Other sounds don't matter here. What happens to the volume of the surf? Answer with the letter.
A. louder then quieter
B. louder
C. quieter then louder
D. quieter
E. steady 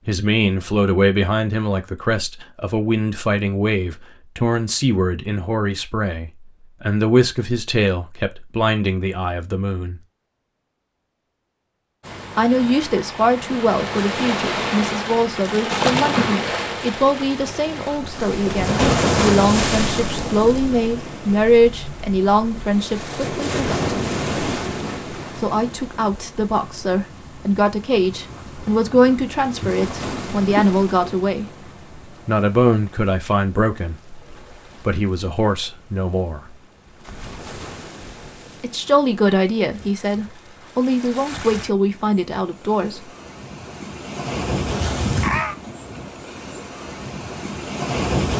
C.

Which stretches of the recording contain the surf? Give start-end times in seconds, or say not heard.
12.1-48.3.